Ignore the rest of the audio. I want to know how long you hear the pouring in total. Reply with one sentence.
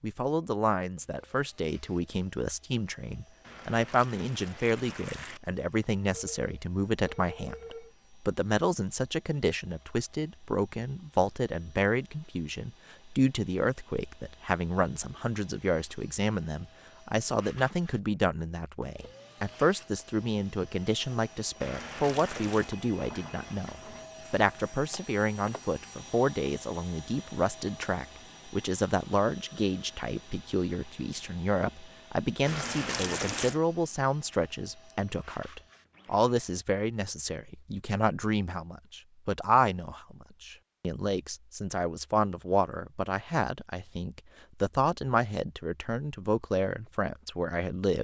The pouring can be heard for 4 seconds in total.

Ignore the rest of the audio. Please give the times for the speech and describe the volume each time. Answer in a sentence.
You can hear the speech from 0.0 to 47.9 s, at a steady volume.